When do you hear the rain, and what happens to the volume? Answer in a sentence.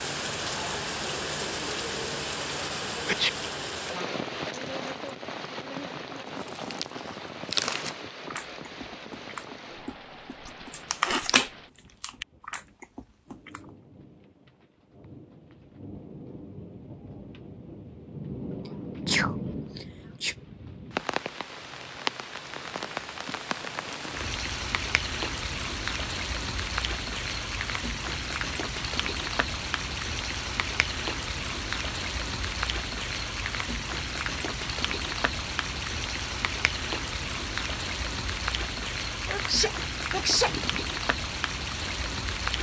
You can hear the rain from 0.0 to 42.5 s, getting quieter then louder.